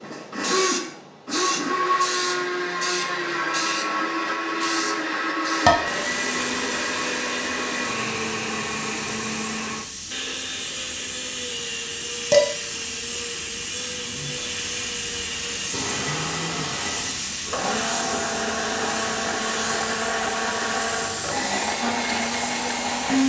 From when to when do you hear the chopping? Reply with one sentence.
The chopping can't be heard in this clip.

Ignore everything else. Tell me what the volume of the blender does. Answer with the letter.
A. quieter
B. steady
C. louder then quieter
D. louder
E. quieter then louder
E.